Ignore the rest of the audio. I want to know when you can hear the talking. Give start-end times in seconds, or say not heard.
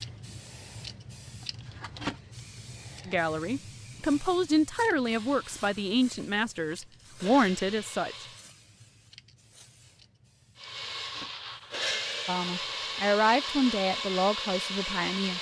3.0-8.2, 12.2-15.3.